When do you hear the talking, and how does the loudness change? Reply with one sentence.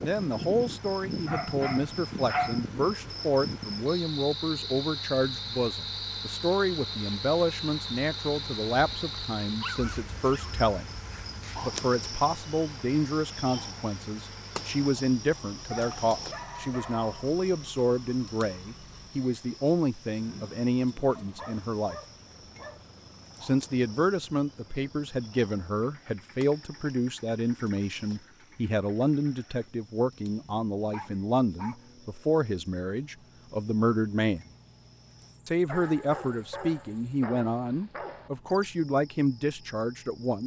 The talking can be heard from 0.0 to 10.9 s, at a steady volume; from 11.6 to 21.9 s, at a steady volume; from 23.4 to 34.5 s, at a steady volume; and from 35.5 to 40.4 s, at a steady volume.